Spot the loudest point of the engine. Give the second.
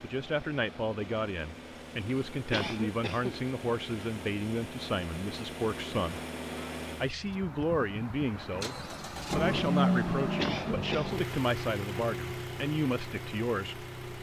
10 s.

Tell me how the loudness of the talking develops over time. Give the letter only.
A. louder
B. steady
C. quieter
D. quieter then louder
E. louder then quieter
B.